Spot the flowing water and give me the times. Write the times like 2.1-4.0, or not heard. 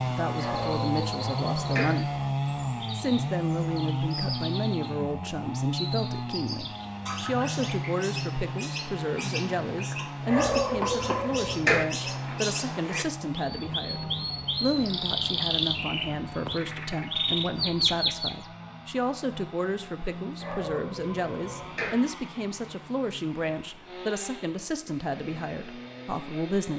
not heard.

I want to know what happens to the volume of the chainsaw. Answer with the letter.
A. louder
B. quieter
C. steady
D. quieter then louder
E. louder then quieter
B.